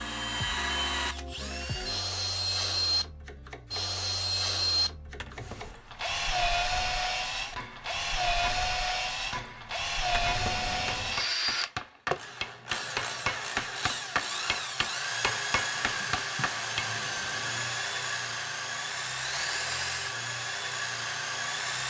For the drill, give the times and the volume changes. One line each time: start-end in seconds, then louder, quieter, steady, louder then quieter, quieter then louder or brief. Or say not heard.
0.0-21.8 steady.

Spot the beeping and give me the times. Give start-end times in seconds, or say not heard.
not heard.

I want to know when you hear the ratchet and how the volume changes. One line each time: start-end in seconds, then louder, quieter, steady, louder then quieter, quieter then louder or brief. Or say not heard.
not heard.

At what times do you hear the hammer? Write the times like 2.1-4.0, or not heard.
6.7-16.9.